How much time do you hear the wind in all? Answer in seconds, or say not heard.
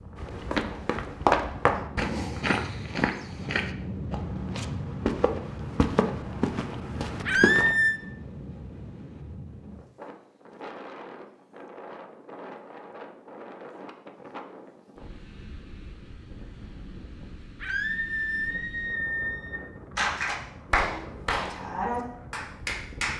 23 s.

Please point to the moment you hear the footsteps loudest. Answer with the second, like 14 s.
1 s.